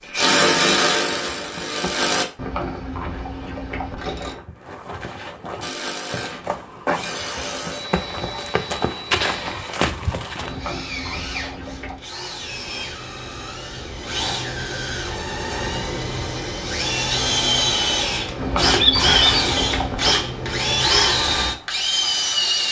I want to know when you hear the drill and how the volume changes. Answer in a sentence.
The drill can be heard briefly from 0.1 to 2.2 s; and from 5.6 to 22.6 s, getting louder.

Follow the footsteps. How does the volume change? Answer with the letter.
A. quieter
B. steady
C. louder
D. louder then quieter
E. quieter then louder
C.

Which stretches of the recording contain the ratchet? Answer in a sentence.
You can hear the ratchet from 2.4 to 4.3 s, from 10.4 to 12.1 s and from 18.4 to 20.2 s.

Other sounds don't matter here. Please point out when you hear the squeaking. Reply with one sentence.
You can hear the squeaking from 18.8 to 19.4 s.